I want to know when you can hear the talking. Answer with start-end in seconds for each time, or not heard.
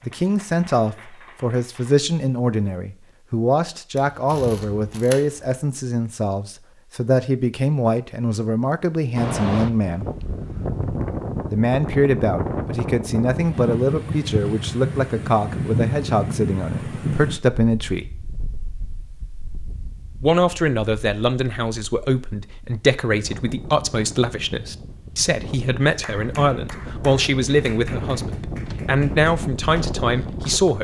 0.1-10.1, 11.5-18.1, 20.2-30.7.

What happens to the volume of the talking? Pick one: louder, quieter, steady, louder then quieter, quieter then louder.
steady.